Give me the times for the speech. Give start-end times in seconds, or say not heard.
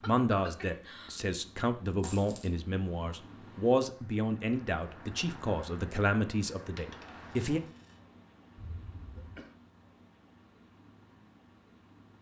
0.1-7.6.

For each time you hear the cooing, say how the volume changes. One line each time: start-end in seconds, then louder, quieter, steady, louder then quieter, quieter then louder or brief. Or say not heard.
not heard.